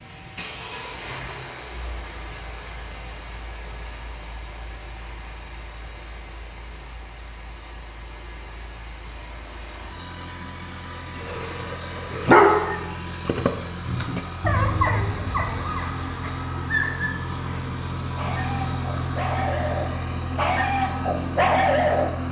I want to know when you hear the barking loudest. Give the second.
12 s.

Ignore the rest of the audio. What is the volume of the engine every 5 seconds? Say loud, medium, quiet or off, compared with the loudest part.
medium, quiet, medium, loud, loud.